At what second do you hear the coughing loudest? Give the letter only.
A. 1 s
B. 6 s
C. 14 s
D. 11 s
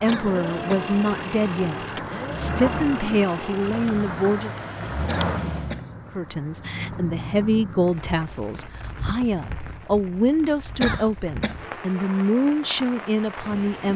D.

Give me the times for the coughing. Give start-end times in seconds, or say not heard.
0.1-0.9, 5.0-5.9, 10.8-11.6.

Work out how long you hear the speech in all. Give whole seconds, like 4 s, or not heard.
12 s.